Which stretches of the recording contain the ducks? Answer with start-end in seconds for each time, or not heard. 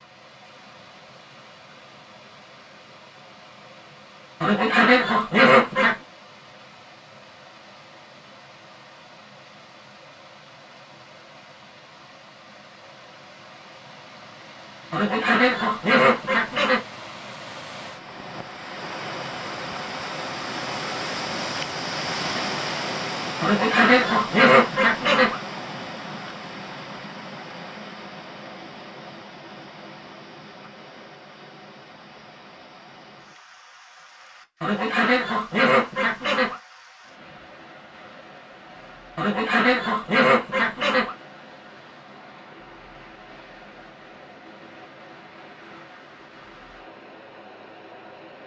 4.4-6.0, 14.9-16.8, 23.4-25.4, 34.6-36.5, 39.1-41.1.